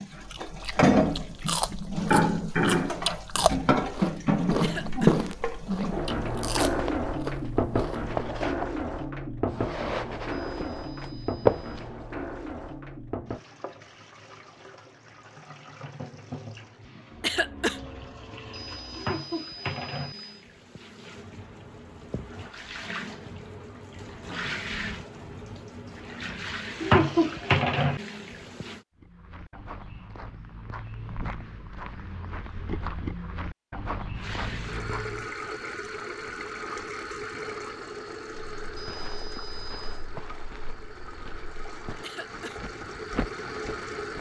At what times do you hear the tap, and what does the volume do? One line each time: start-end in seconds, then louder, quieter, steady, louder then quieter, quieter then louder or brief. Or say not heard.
0.0-28.9 quieter then louder
34.1-44.1 quieter then louder.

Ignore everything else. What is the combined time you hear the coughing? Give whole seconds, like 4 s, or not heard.
2 s.